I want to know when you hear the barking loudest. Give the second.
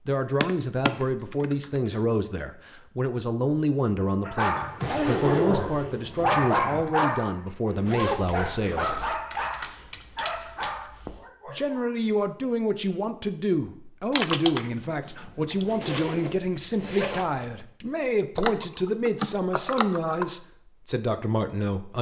6 s.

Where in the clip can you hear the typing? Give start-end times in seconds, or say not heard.
0.4-1.8, 4.5-7.0, 8.9-11.2, 14.1-16.0, 18.4-20.2.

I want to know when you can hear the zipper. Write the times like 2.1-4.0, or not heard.
4.8-5.8, 7.8-9.1, 15.5-17.6.